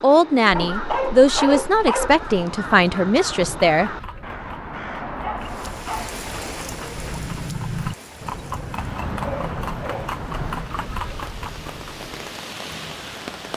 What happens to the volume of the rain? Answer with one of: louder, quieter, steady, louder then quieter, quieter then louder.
quieter then louder.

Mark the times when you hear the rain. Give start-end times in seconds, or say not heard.
5.4-13.5.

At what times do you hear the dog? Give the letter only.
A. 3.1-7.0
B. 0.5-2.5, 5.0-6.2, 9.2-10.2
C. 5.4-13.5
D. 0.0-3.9
B.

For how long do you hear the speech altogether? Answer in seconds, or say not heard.
4 s.